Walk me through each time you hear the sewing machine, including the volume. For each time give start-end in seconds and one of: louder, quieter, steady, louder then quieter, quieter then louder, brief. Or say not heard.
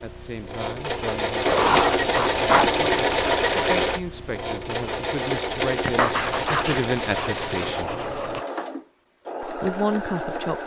0.0-10.6 quieter.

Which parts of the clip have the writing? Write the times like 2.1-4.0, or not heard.
1.4-2.8, 5.8-8.4.